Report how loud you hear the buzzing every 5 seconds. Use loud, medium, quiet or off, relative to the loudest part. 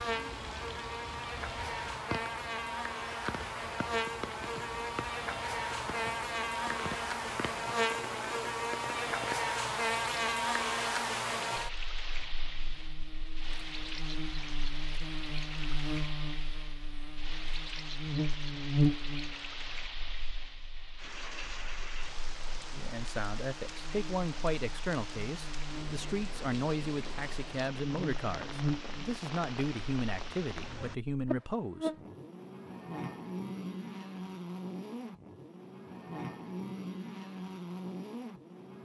loud, loud, loud, loud, quiet, medium, medium, medium.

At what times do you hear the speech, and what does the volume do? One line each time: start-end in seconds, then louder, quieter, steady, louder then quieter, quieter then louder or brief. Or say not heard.
22.7-31.9 steady.